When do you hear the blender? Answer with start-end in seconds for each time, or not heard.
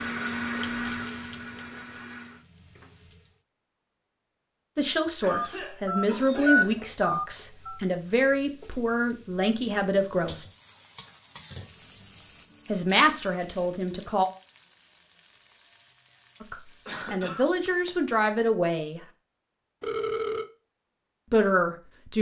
0.0-2.5.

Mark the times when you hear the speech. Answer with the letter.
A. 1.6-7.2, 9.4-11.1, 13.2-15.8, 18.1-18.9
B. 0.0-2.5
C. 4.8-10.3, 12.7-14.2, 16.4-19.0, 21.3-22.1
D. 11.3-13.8
C.